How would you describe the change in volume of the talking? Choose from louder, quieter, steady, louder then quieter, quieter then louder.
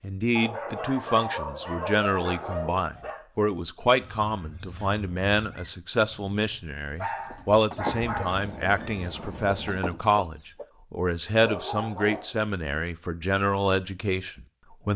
steady.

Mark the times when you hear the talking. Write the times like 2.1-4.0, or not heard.
0.0-14.9.